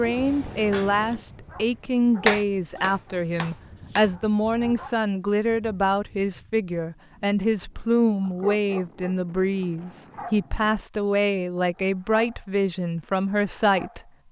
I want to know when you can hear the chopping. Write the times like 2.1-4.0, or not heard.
2.2-4.1.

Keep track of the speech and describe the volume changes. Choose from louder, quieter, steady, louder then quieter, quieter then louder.
steady.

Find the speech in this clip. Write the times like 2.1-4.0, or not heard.
0.0-14.0.